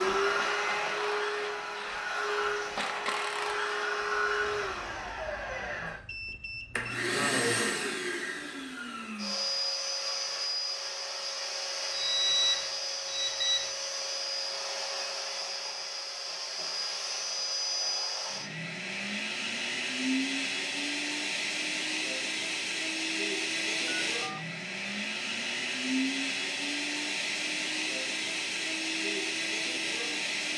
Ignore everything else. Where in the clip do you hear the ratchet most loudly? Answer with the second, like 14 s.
3 s.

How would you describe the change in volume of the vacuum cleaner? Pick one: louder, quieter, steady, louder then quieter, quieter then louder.
steady.